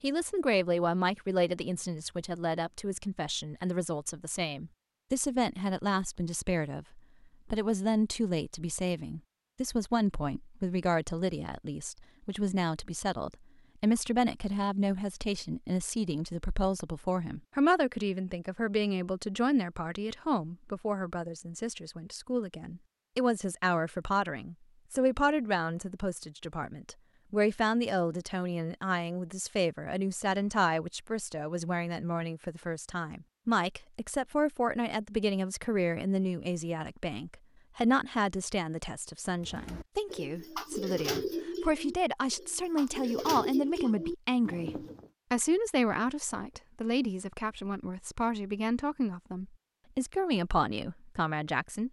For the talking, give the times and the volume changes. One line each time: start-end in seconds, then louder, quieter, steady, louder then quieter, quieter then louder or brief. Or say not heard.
0.0-51.8 steady.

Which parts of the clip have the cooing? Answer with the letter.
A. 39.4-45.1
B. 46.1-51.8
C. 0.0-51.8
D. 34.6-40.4
A.